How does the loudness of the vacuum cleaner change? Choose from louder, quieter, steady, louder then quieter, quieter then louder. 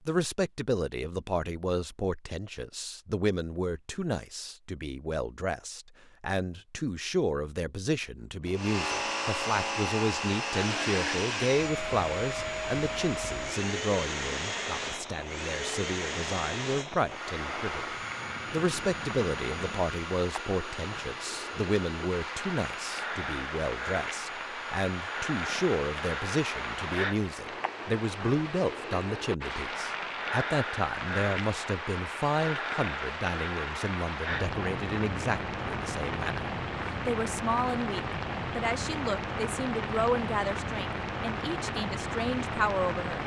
quieter.